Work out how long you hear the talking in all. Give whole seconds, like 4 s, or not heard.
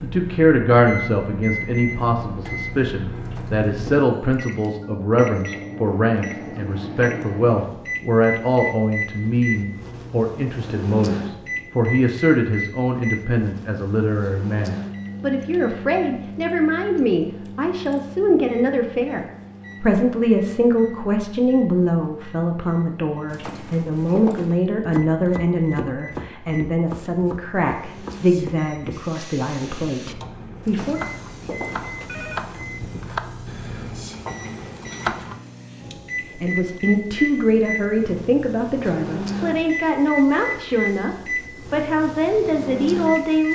38 s.